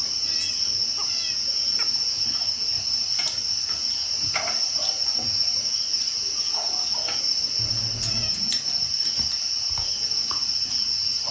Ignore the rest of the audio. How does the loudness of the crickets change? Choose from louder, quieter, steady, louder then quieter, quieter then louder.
steady.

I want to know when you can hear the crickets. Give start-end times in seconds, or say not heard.
0.0-11.2.